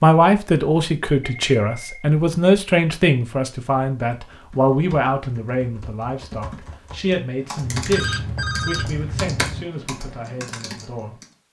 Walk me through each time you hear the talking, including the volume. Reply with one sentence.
You can hear the talking from 0.0 to 11.2 s, getting quieter.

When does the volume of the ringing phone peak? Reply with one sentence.
The volume of the ringing phone peaks at 9 seconds.